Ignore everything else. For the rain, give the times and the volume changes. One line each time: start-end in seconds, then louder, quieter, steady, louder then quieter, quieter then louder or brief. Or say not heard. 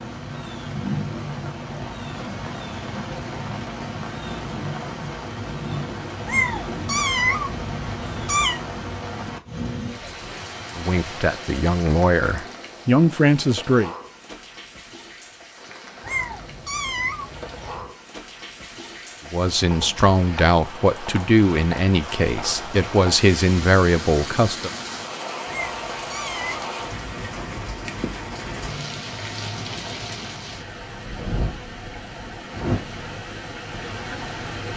0.0-34.7 quieter then louder.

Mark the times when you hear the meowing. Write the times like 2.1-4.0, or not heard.
6.2-8.6, 16.0-17.9, 25.4-26.7.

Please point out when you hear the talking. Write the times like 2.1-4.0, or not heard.
10.8-13.9, 19.3-24.7.